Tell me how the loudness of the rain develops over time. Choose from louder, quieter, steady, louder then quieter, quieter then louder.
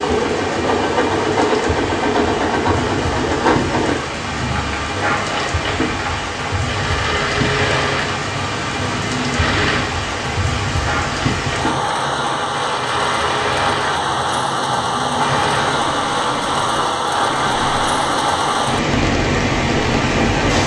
louder.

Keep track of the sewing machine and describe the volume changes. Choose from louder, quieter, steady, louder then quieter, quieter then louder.
quieter.